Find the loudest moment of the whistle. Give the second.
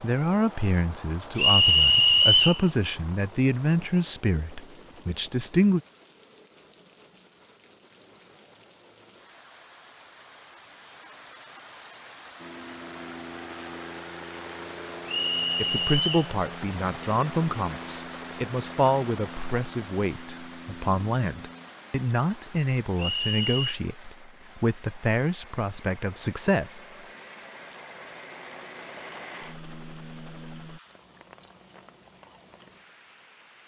2 s.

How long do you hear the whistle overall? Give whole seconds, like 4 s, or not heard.
3 s.